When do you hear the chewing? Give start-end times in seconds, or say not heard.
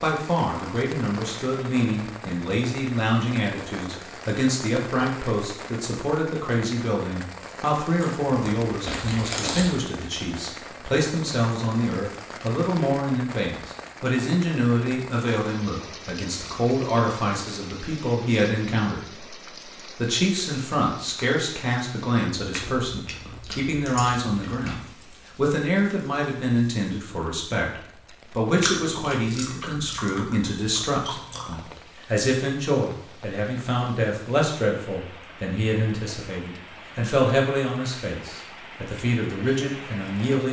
8.0-9.7, 22.4-24.9, 28.6-31.6.